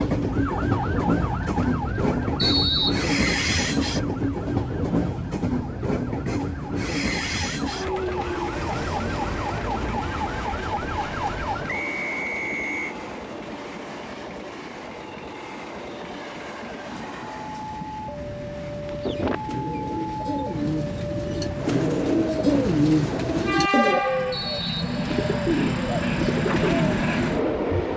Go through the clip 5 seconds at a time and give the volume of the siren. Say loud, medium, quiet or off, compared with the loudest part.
loud, loud, loud, off, off, off.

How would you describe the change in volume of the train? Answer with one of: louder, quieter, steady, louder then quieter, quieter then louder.
quieter then louder.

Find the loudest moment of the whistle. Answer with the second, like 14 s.
3 s.